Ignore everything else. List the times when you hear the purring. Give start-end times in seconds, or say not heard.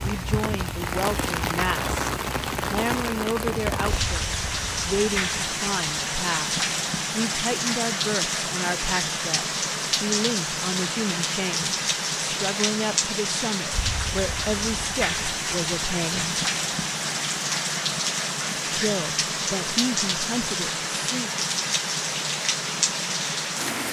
not heard.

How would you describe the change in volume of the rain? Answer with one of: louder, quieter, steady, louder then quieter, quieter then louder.
steady.